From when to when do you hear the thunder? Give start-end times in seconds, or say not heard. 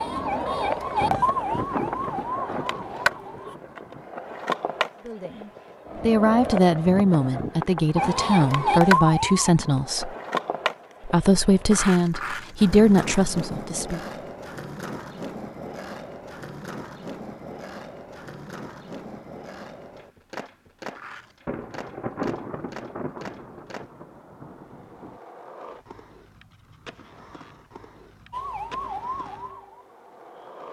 1.0-4.1, 21.4-25.2.